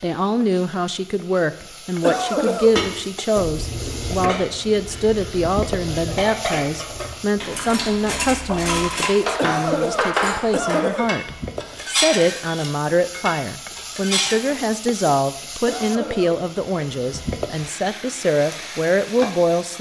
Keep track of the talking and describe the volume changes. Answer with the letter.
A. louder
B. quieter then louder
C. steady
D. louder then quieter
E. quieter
C.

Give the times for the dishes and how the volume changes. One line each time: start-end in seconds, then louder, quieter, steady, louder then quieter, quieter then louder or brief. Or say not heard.
2.6-14.4 louder.